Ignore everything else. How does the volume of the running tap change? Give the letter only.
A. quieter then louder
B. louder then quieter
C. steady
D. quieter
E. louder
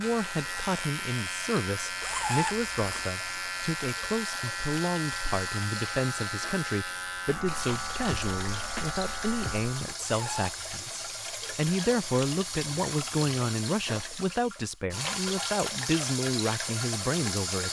E.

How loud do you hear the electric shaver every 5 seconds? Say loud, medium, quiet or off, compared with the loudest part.
loud, loud, off, off.